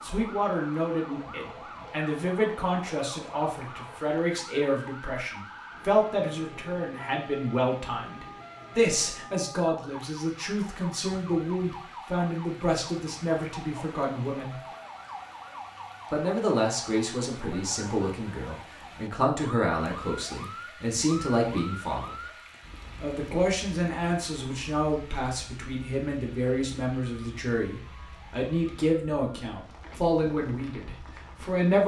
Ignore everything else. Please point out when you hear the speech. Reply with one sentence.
The speech can be heard from 0.0 to 14.6 s, from 16.1 to 22.2 s and from 23.0 to 31.8 s.